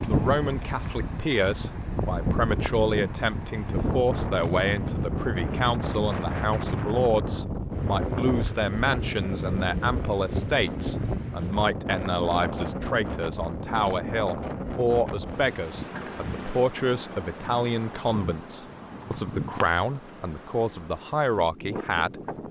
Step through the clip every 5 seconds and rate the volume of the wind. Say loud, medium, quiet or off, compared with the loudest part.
loud, loud, loud, medium, medium.